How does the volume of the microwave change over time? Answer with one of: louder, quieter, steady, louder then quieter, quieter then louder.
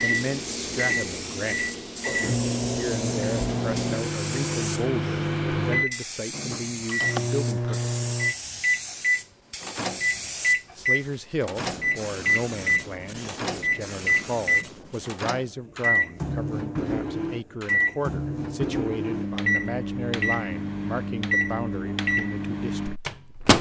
steady.